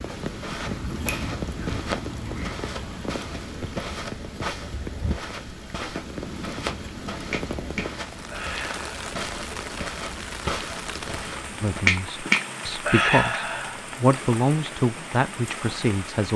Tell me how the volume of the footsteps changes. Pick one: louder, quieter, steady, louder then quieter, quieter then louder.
steady.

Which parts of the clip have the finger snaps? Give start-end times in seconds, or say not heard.
0.6-2.5, 7.3-8.8, 11.8-13.8.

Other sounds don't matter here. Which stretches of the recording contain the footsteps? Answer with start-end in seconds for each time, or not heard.
0.1-11.8.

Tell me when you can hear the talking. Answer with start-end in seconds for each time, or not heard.
11.6-16.3.